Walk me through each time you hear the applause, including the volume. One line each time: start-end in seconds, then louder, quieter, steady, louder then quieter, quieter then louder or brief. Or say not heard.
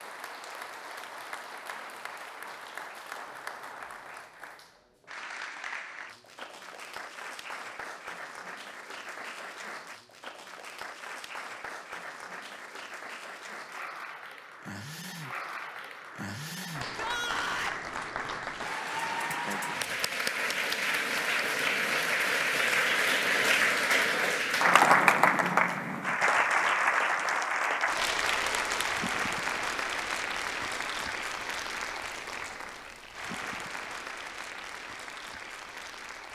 0.0-36.3 louder then quieter.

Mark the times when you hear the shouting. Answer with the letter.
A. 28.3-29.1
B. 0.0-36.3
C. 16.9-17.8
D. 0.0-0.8
C.